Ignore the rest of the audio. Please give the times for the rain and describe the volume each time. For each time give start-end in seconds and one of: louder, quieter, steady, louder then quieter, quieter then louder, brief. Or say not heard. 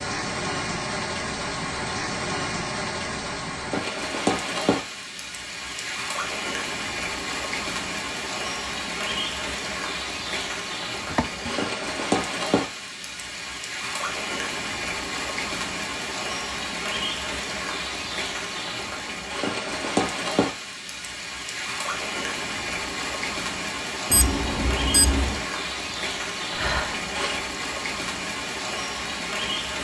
0.0-29.7 steady.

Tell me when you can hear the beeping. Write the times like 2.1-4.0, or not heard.
24.1-25.4.